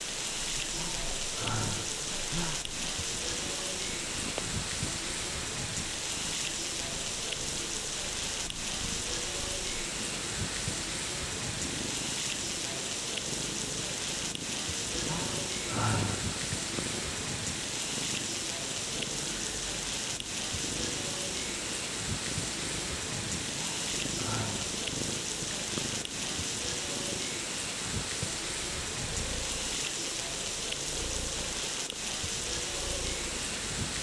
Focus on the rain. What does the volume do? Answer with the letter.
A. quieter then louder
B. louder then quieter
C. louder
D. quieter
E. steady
E.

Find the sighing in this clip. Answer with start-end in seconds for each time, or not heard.
0.7-2.6, 15.0-16.3, 23.5-24.8.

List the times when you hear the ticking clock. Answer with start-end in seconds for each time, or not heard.
not heard.